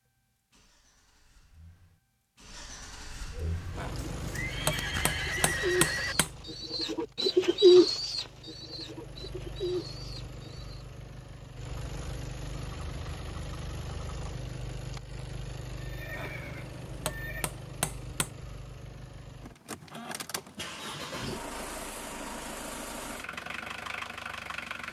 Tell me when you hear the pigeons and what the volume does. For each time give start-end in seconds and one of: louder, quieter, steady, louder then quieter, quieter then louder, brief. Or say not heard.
3.3-10.8 louder then quieter.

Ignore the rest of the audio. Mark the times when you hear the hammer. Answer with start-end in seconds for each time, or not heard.
3.8-6.3, 16.1-18.3.